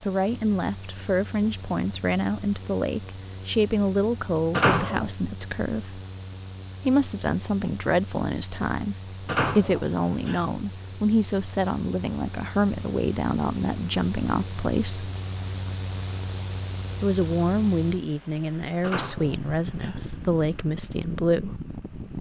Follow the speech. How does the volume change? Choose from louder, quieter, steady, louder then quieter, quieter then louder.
steady.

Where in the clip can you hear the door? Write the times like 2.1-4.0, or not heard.
4.5-5.1, 9.2-10.5, 18.8-20.1.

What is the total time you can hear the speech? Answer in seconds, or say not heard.
19 s.